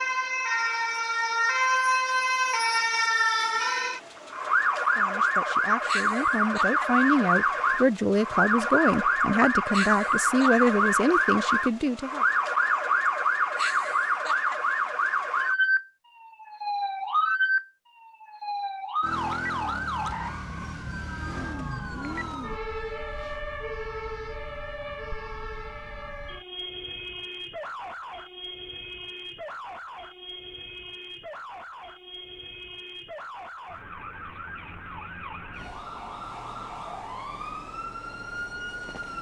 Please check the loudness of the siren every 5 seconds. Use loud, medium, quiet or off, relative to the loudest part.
loud, loud, loud, loud, medium, quiet, quiet, quiet.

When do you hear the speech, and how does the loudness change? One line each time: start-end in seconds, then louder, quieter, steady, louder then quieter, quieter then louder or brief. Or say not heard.
5.0-12.2 louder.